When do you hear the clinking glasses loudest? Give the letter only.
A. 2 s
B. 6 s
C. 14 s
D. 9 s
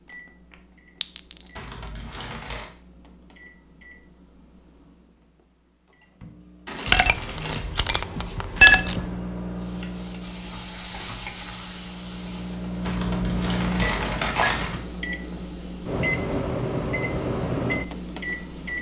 D.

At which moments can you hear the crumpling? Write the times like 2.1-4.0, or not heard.
1.6-2.7, 6.7-7.7, 12.8-14.8.